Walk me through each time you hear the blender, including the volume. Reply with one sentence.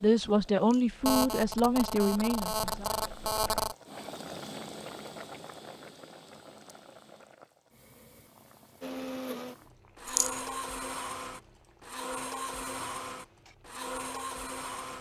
The blender can be heard from 8.8 to 14.9 s, at a steady volume.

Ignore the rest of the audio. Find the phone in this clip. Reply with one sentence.
You can hear the phone from 1.1 to 3.8 s.